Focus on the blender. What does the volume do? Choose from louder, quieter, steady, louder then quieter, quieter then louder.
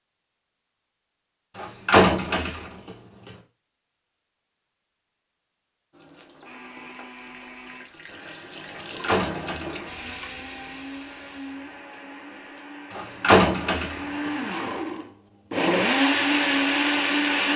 louder.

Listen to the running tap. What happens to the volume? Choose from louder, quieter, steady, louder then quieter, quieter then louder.
louder then quieter.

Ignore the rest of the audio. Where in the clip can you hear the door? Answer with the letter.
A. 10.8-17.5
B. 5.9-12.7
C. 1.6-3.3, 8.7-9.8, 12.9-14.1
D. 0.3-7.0
C.